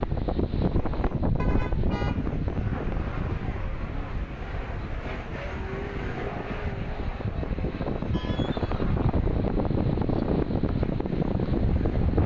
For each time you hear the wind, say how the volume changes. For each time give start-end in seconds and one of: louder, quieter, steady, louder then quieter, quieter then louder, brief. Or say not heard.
0.0-12.2 quieter then louder.